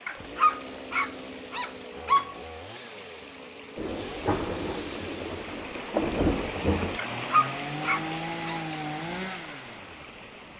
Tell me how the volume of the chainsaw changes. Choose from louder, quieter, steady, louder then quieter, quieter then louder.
louder.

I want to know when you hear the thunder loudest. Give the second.
6 s.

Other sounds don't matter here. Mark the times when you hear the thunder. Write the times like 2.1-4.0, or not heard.
3.8-7.0.